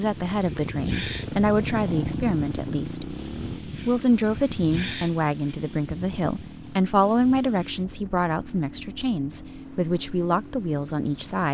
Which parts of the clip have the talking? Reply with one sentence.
The talking can be heard from 0.0 to 11.4 s.